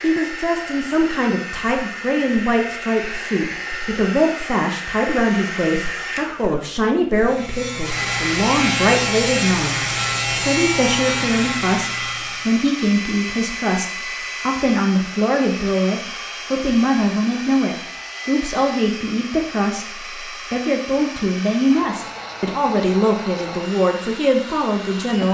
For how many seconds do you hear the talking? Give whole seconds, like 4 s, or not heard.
25 s.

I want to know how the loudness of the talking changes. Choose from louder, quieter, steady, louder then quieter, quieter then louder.
steady.